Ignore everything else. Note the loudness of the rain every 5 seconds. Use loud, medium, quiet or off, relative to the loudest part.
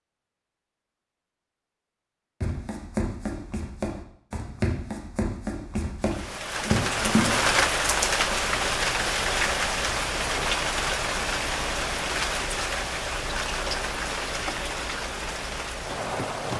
off, loud, loud, medium.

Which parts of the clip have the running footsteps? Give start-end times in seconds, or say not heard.
2.4-7.5.